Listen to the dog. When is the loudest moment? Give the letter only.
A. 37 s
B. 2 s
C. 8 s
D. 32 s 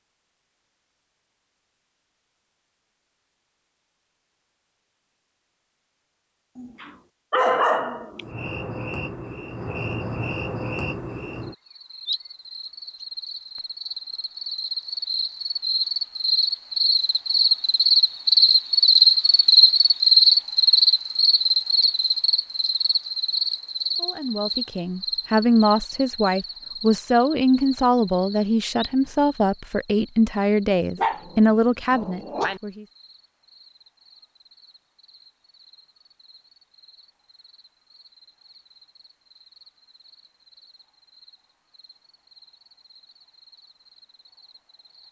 C.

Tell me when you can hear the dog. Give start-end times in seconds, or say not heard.
6.5-8.3, 30.9-32.6.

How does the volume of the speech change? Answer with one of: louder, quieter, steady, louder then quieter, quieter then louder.
steady.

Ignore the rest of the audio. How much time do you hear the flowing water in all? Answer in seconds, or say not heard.
not heard.